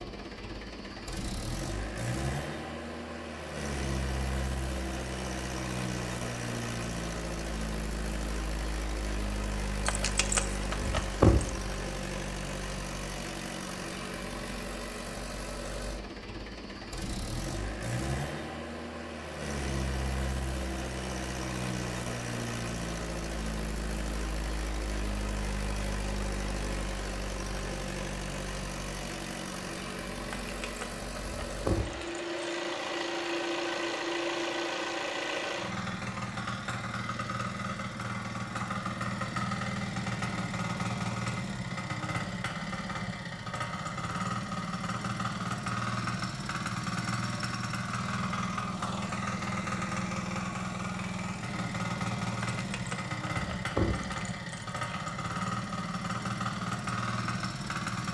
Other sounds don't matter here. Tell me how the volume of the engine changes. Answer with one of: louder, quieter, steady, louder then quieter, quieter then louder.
steady.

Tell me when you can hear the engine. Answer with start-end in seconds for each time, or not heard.
0.0-58.0.